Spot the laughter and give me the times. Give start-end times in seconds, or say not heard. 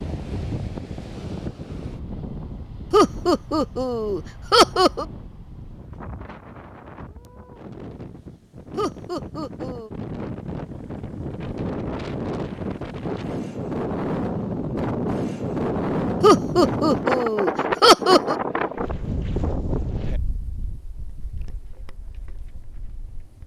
2.9-5.0, 8.8-9.9, 16.2-18.4.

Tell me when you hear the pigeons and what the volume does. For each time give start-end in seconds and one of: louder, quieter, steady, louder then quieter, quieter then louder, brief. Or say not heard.
not heard.